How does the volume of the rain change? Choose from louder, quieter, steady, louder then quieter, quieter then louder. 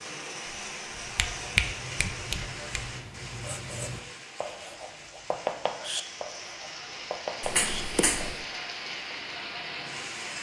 quieter then louder.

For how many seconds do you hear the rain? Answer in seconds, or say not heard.
10 s.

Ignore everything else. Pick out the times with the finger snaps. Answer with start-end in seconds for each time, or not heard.
0.9-2.8, 7.4-8.4.